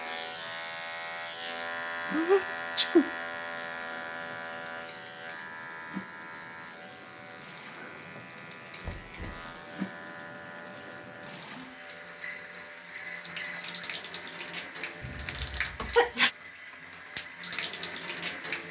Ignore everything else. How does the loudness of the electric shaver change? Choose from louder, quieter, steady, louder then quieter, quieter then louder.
quieter.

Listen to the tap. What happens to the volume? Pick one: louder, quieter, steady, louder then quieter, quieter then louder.
louder.